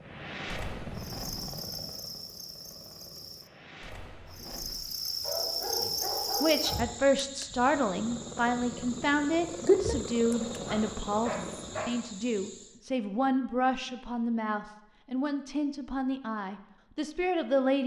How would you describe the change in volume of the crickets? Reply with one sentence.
The loudness of the crickets goes up, then down.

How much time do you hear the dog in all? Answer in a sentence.
You can hear the dog for 3 seconds altogether.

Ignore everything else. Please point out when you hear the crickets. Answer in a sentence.
You can hear the crickets from 0.0 to 12.8 s.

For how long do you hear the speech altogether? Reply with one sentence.
The speech can be heard for 12 seconds in total.